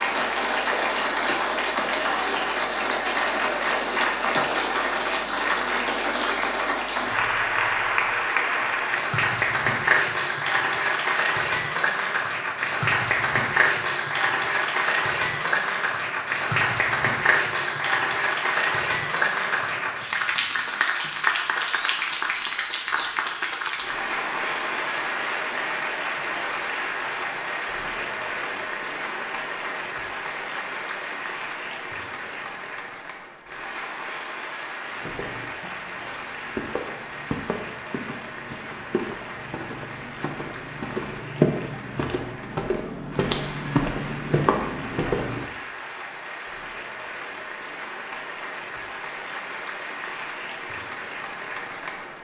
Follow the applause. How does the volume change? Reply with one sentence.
The volume of the applause goes down.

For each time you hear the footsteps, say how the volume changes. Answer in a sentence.
You can hear the footsteps from 34.9 to 45.5 s, getting louder.